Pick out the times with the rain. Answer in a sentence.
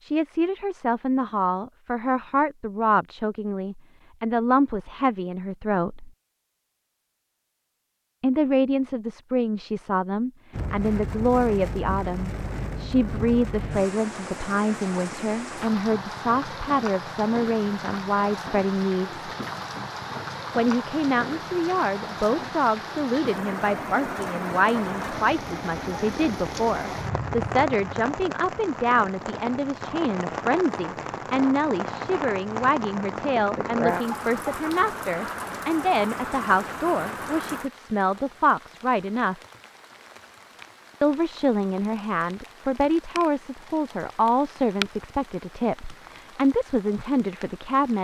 You can hear the rain from 10.5 to 47.9 s.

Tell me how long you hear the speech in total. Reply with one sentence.
The speech can be heard for 43 seconds in total.